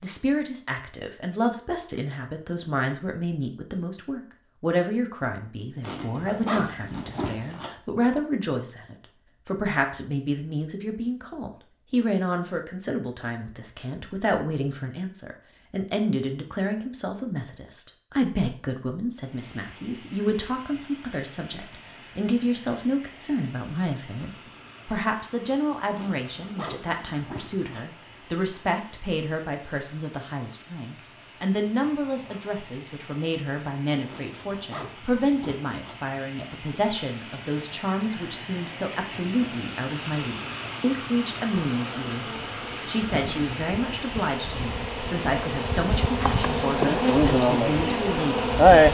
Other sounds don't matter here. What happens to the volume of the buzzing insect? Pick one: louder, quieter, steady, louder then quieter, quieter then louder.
louder.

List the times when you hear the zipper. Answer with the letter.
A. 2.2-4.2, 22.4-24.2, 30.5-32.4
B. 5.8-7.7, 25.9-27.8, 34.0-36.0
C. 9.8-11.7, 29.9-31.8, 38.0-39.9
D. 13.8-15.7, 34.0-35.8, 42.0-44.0
B.